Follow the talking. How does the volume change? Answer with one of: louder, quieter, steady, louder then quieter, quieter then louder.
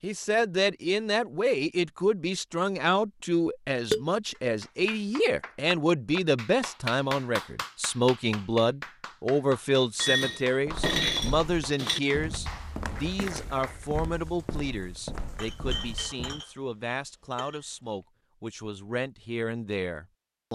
quieter.